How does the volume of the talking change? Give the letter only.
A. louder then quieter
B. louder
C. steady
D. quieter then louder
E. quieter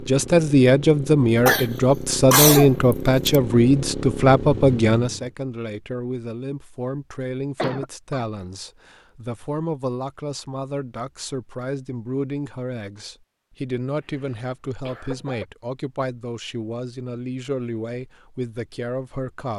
E.